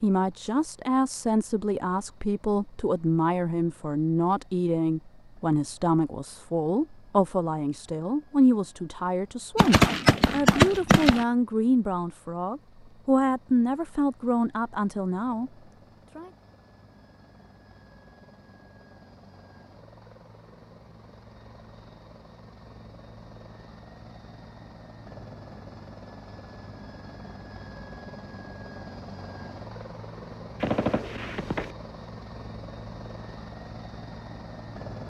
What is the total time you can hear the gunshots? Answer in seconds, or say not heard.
3 s.